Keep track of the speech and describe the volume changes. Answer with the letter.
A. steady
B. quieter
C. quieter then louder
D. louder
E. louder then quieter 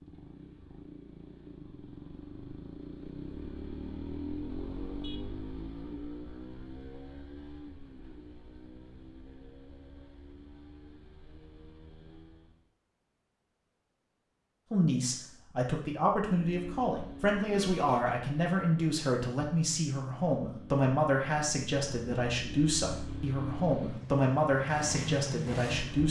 A.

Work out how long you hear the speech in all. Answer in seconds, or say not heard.
11 s.